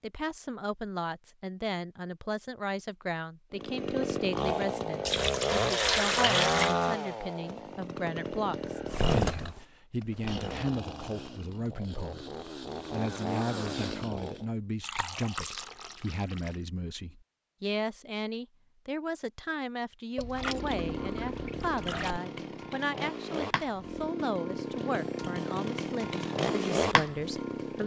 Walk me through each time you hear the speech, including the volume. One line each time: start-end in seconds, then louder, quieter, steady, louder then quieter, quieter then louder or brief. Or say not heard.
0.0-27.8 steady.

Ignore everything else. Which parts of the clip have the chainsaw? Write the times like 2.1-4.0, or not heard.
3.5-14.4, 20.2-27.8.